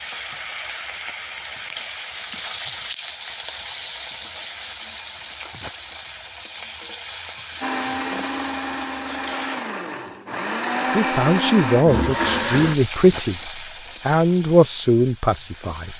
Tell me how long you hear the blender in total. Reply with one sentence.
You can hear the blender for 5 seconds altogether.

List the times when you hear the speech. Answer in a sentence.
You can hear the speech from 10.9 to 15.9 s.